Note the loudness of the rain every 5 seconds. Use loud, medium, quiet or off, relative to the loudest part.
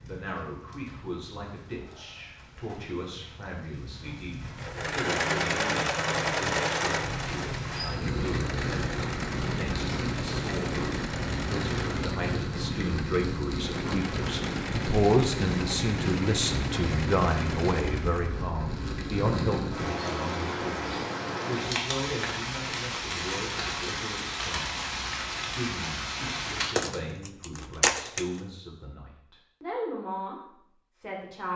quiet, loud, loud, loud, loud, loud, off.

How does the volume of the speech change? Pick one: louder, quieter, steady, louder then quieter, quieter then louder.
louder then quieter.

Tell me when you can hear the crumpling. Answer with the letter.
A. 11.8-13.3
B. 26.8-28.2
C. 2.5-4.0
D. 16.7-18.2
B.